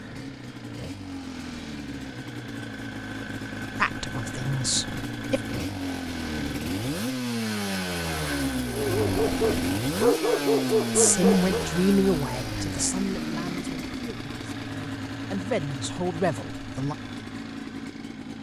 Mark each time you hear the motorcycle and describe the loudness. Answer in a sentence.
You can hear the motorcycle from 0.0 to 18.3 s, getting louder then quieter.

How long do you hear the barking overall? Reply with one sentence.
The barking can be heard for 3 seconds in total.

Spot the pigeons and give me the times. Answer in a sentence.
You can't hear the pigeons here.